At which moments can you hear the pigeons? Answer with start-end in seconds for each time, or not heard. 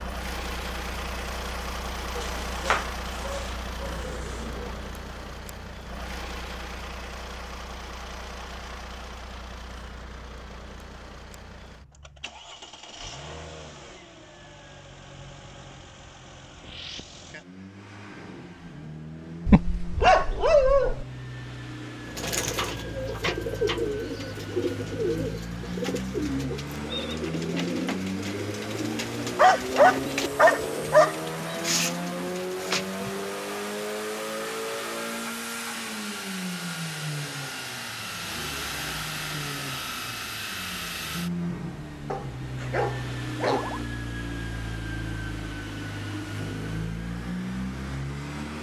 22.1-33.2.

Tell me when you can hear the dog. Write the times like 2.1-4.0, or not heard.
2.1-4.1, 19.4-21.1, 29.4-31.1, 42.1-43.8.